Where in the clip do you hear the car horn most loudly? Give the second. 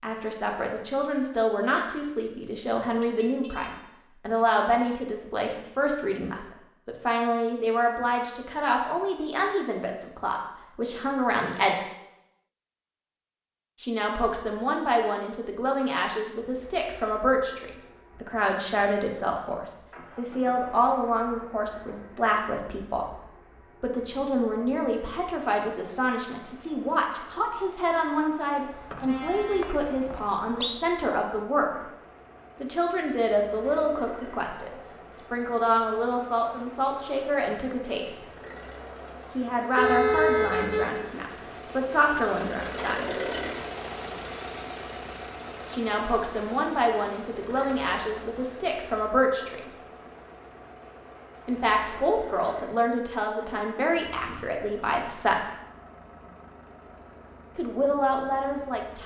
40 s.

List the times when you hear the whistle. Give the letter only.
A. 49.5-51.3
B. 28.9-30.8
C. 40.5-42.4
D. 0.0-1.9
B.